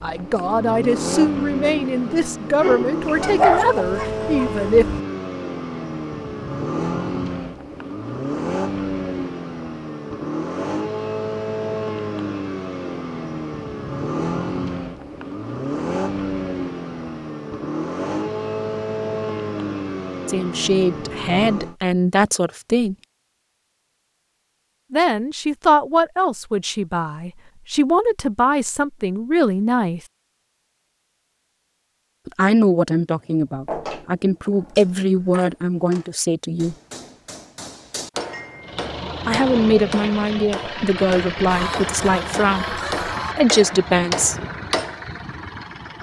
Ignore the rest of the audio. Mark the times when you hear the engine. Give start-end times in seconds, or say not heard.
0.0-21.8, 38.6-45.9.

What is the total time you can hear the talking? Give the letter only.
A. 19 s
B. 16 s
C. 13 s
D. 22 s
D.